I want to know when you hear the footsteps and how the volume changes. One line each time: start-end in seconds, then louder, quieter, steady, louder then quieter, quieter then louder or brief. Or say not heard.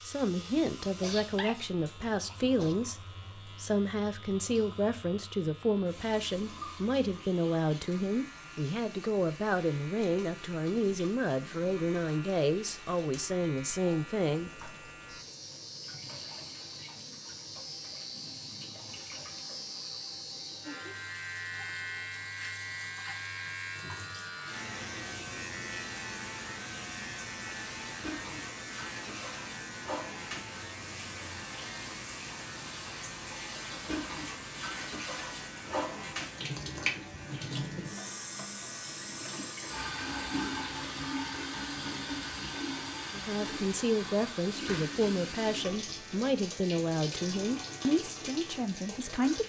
not heard.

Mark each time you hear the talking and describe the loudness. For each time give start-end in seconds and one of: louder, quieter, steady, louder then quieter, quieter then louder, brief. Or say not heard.
0.0-14.5 steady
43.1-49.4 steady.